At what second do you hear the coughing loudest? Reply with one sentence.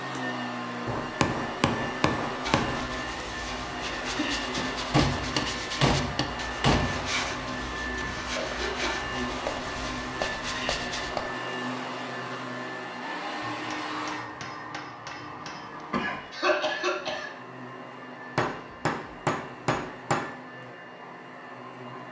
The volume of the coughing peaks at 17 seconds.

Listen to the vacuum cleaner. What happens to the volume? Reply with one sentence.
The volume of the vacuum cleaner goes down.